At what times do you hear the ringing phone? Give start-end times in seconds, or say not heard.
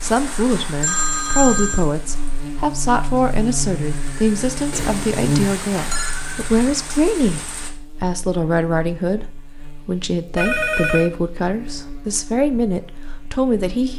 0.8-1.9, 4.7-6.2, 10.3-11.1.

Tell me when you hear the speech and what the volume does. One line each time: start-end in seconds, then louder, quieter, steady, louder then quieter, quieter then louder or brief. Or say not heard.
0.0-13.9 steady.